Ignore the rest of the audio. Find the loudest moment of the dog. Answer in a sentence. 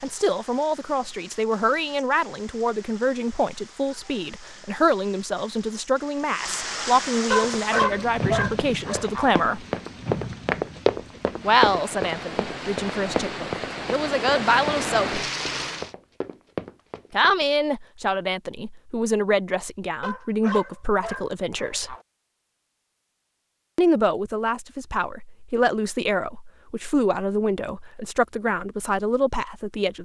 The volume of the dog peaks at 8 seconds.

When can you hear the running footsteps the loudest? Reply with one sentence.
The loudest moment of the running footsteps is at 11 seconds.